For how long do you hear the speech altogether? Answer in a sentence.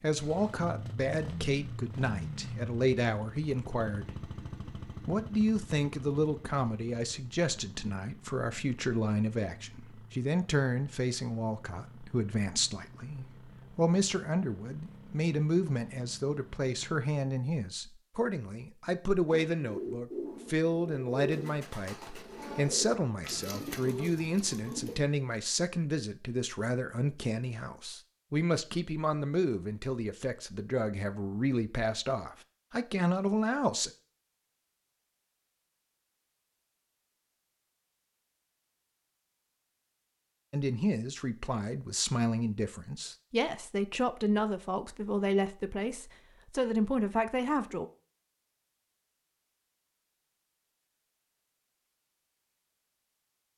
The speech can be heard for 41 seconds in total.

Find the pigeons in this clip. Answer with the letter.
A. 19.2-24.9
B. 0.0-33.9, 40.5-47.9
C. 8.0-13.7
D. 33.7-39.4
A.